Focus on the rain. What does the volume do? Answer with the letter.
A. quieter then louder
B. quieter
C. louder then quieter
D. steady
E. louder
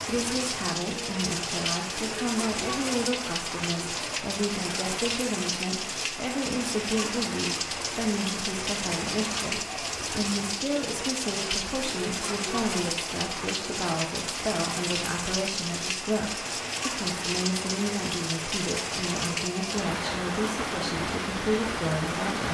D.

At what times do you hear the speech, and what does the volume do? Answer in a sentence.
You can hear the speech from 0.1 to 22.4 s, at a steady volume.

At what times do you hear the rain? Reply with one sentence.
You can hear the rain from 0.0 to 22.4 s.